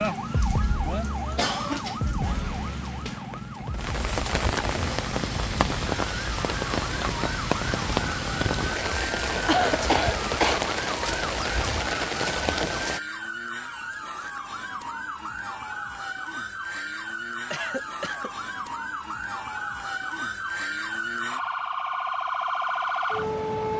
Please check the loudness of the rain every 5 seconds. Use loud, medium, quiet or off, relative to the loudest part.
medium, loud, loud, off, off.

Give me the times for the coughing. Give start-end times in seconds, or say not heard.
1.4-1.9, 9.4-10.7, 17.5-18.3.